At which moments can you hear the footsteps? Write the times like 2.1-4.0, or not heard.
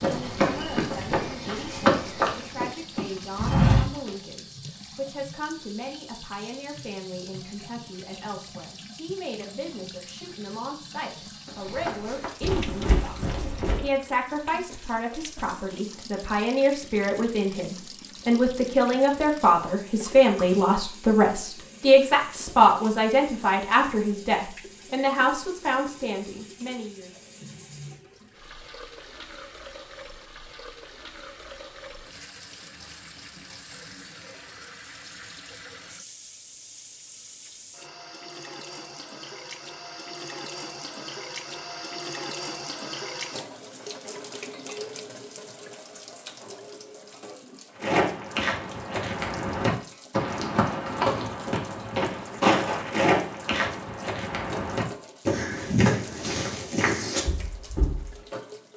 0.0-4.1, 11.4-13.8, 47.8-58.1.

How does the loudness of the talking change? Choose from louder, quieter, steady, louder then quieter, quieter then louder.
louder.